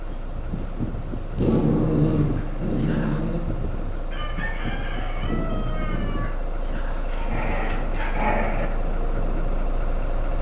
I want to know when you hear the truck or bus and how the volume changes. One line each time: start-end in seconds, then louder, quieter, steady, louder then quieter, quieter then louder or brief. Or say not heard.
0.0-10.3 louder.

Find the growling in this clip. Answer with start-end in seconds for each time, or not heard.
1.4-3.4, 7.1-8.7.